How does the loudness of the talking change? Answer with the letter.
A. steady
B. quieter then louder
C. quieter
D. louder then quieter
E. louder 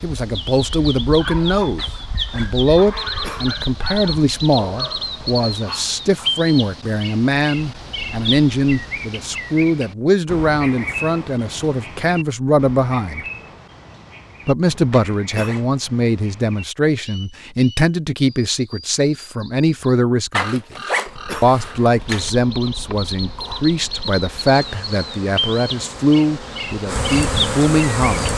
A.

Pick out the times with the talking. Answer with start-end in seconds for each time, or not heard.
0.0-13.2, 14.4-20.8, 21.4-28.3.